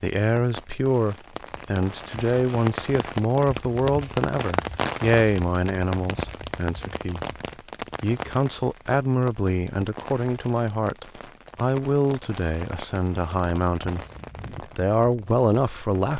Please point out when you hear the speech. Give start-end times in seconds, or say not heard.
0.0-7.2, 8.0-14.1, 14.8-16.1.